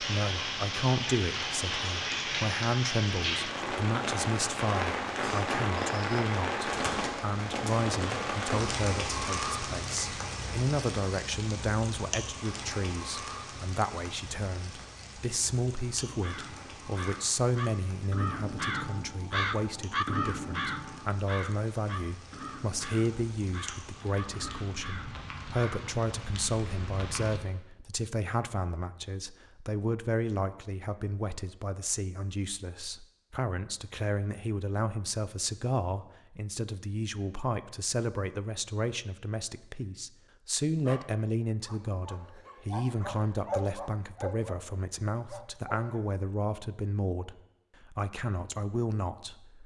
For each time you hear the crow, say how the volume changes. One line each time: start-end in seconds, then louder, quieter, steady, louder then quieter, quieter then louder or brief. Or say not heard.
16.1-25.9 louder then quieter.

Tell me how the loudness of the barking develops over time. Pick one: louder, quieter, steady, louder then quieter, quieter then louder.
louder then quieter.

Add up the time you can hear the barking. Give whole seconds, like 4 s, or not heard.
5 s.